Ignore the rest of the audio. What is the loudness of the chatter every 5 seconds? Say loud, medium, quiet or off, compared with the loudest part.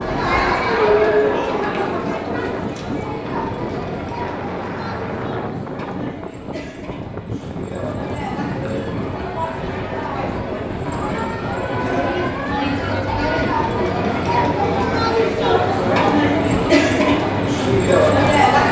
medium, quiet, medium, loud.